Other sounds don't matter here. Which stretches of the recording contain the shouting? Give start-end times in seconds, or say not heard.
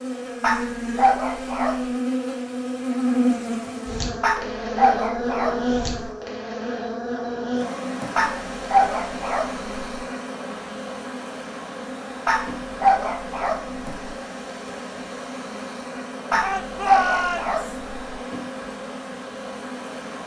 16.4-17.6.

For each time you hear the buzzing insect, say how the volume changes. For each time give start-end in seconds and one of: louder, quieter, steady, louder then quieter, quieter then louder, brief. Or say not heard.
0.0-20.2 quieter.